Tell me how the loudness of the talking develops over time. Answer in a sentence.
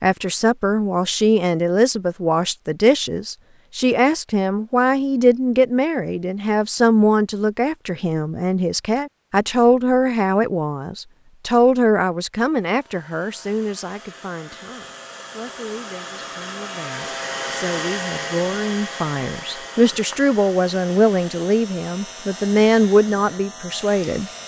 The loudness of the talking goes down, then up.